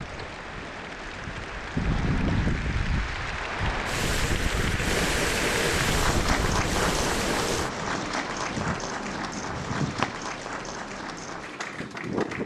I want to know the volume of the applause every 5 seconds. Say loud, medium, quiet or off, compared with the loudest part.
medium, loud, medium.